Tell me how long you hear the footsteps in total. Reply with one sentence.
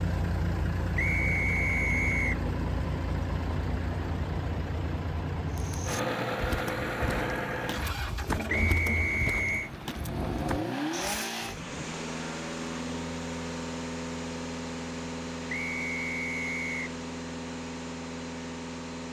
The footsteps can be heard for 6 seconds in total.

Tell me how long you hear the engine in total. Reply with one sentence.
You can hear the engine for 19 seconds altogether.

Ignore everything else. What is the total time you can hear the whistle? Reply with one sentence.
The whistle can be heard for 4 seconds in total.